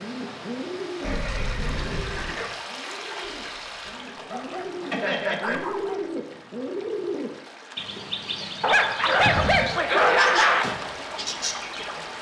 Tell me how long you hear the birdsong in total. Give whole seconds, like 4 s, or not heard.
12 s.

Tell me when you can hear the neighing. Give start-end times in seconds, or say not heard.
1.0-2.4, 4.9-5.6, 9.2-9.8.